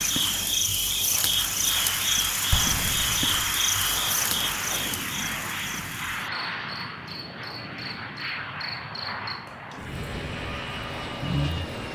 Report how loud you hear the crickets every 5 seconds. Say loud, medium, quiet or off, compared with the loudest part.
loud, quiet, medium.